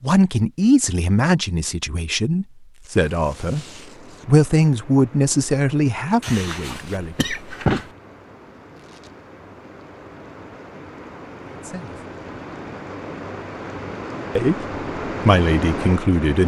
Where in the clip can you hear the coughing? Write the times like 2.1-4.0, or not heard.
6.2-7.9.